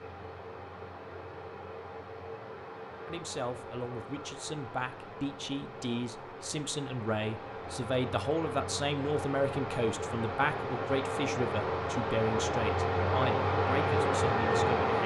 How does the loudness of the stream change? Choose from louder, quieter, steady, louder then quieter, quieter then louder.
louder.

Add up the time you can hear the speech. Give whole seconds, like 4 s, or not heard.
12 s.